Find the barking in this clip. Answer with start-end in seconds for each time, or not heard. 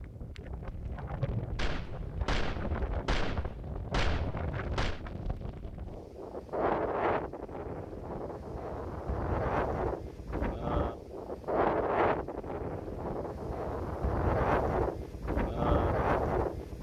not heard.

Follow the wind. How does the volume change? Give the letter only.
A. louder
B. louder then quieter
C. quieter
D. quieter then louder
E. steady
A.